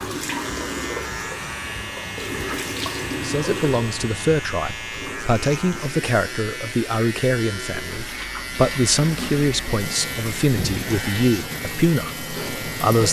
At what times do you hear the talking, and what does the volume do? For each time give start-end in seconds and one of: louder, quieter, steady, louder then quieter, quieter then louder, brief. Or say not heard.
3.1-13.0 steady.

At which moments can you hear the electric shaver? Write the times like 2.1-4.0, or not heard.
0.0-13.0.